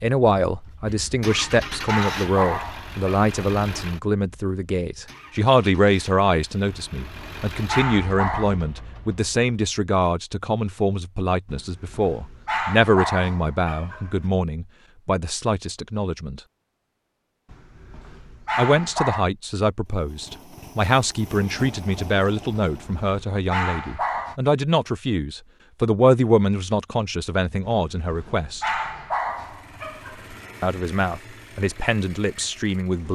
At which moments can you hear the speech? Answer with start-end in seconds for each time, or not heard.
0.0-16.4, 18.6-28.7, 30.6-33.1.